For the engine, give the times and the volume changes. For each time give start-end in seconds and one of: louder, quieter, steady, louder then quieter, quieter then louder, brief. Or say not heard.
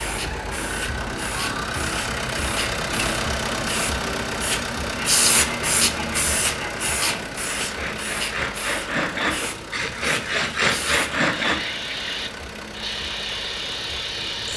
0.0-14.5 quieter.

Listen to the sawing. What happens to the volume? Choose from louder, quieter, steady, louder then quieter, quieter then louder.
louder.